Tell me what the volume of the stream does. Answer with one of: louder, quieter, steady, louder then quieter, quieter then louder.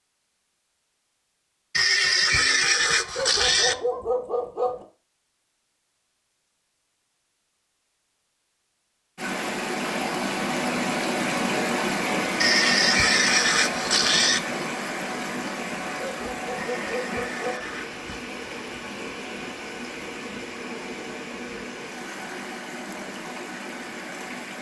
quieter.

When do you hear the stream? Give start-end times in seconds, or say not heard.
9.2-24.5.